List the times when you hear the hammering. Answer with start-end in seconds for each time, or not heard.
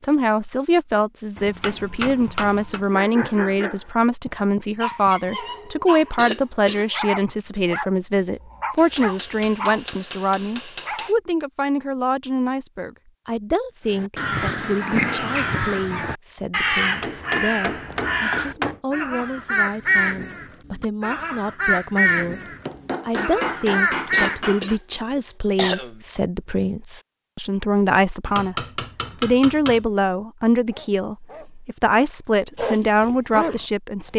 1.4-2.9, 8.8-11.2, 17.0-18.8, 22.6-24.8, 28.2-29.9.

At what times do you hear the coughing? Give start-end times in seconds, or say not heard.
6.1-6.8, 24.1-26.0.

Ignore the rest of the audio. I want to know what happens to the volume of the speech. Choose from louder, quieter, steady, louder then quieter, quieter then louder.
quieter then louder.